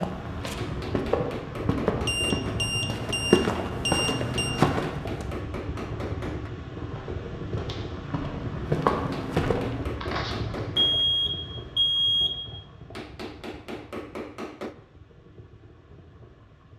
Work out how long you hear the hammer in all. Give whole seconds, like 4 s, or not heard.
8 s.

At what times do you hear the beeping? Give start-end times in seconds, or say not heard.
2.0-4.5, 10.8-12.4.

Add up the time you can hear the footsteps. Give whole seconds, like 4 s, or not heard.
9 s.